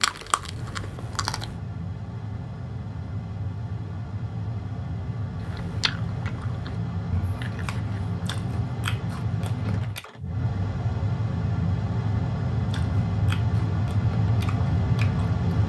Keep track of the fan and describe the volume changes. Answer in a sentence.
The loudness of the fan goes up.